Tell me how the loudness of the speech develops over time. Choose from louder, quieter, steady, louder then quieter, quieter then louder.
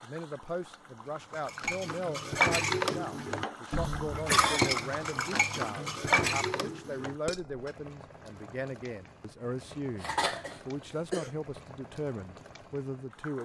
steady.